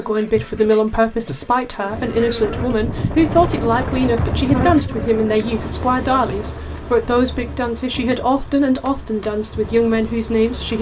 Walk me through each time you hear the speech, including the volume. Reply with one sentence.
You can hear the speech from 0.0 to 10.7 s, at a steady volume.